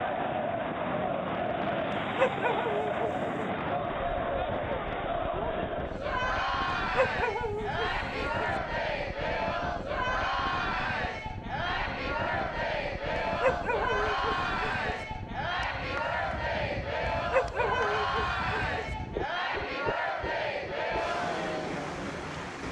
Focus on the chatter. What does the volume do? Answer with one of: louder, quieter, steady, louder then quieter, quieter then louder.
steady.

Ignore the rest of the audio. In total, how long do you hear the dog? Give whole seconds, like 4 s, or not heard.
6 s.